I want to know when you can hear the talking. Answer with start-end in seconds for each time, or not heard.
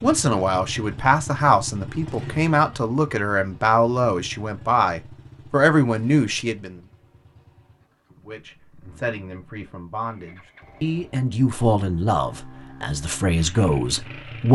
0.0-6.8, 8.2-14.4.